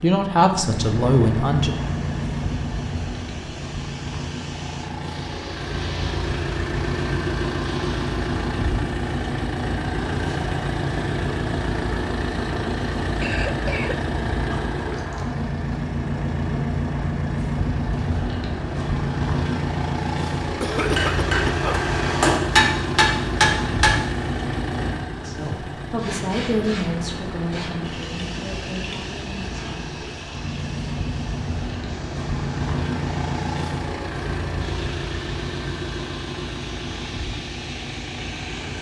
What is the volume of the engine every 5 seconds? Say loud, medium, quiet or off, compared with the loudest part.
loud, loud, loud, loud, loud, medium, loud, medium.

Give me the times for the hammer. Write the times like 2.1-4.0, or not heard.
20.8-24.1.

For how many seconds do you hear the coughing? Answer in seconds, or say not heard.
3 s.